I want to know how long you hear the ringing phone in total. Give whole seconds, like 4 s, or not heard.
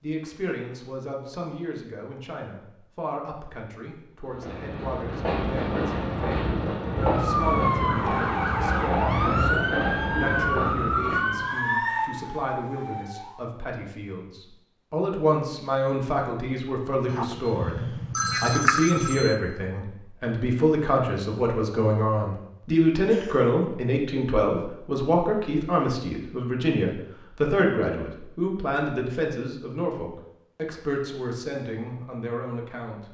2 s.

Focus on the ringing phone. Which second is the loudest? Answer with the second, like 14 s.
19 s.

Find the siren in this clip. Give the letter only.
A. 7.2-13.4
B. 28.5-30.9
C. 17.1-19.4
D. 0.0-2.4
A.